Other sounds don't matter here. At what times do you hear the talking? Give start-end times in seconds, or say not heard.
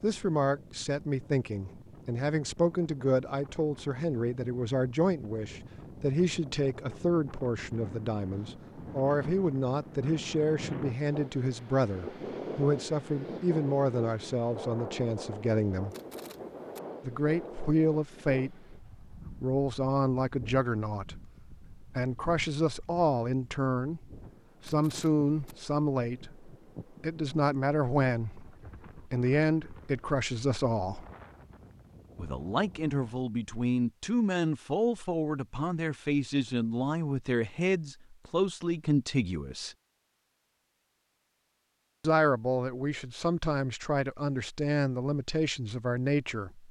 0.0-15.9, 17.0-24.1, 24.6-31.1, 32.1-39.8, 42.0-46.6.